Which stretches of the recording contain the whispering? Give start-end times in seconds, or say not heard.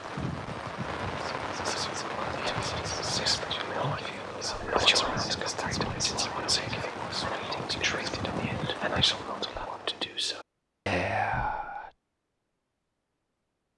1.4-11.9.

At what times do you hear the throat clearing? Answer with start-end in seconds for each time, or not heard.
not heard.